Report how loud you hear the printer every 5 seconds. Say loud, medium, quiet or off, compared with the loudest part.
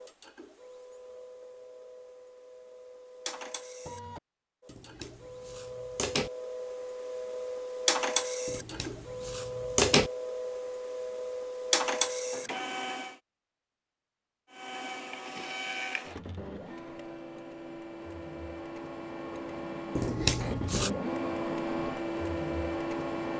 quiet, loud, loud, medium, loud.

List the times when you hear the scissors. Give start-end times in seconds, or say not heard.
4.7-6.3, 8.4-10.1, 19.9-20.9.